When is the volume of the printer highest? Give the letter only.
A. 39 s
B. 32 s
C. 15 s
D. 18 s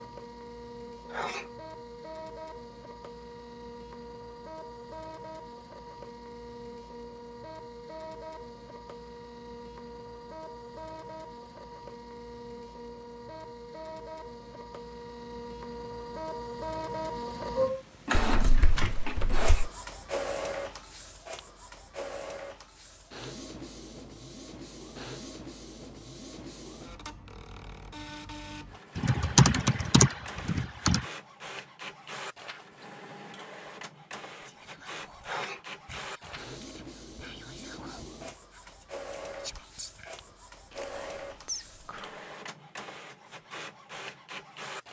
D.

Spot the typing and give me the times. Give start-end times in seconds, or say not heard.
18.1-19.5, 29.0-31.0.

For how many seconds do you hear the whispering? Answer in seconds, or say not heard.
8 s.